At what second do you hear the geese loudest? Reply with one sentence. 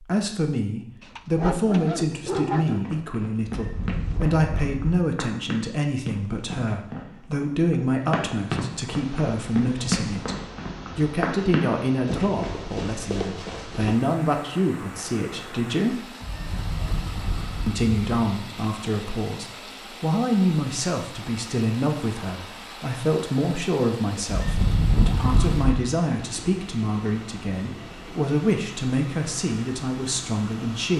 The loudest moment of the geese is at 25 seconds.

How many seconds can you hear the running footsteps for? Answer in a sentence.
The running footsteps can be heard for 11 seconds in total.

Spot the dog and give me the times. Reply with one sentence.
The dog can be heard from 1.0 to 2.9 s.